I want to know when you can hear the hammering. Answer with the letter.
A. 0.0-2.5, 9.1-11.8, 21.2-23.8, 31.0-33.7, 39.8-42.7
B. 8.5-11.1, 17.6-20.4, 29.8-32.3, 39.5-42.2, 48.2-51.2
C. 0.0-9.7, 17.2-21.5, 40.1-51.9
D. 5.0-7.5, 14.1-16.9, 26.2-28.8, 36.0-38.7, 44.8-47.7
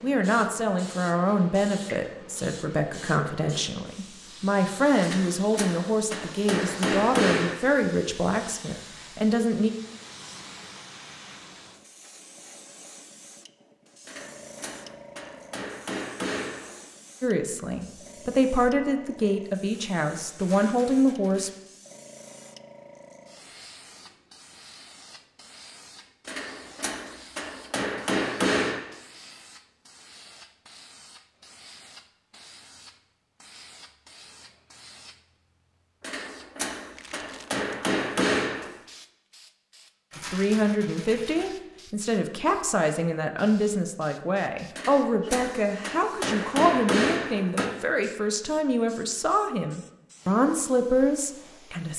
D.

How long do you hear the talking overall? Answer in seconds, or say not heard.
26 s.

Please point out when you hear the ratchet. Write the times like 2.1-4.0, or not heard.
not heard.